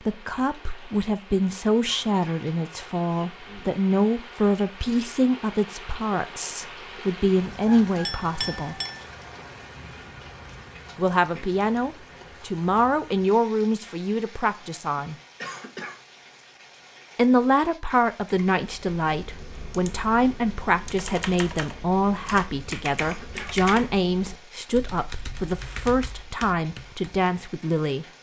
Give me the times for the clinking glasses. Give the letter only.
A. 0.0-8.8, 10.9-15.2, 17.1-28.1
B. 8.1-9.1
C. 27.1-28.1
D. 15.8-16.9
B.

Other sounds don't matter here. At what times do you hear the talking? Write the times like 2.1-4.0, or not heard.
0.0-8.8, 10.9-15.2, 17.1-28.1.